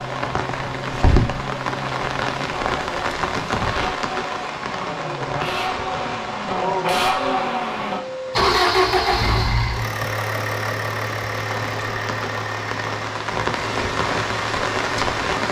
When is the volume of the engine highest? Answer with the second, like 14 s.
9 s.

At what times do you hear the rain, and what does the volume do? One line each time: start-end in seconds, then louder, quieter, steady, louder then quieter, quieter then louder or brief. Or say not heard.
0.0-15.4 quieter then louder.